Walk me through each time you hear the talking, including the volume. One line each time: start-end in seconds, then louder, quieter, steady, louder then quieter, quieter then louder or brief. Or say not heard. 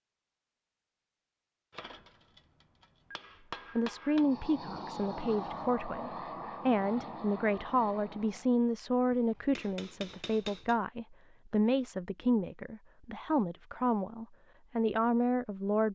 3.8-15.9 steady.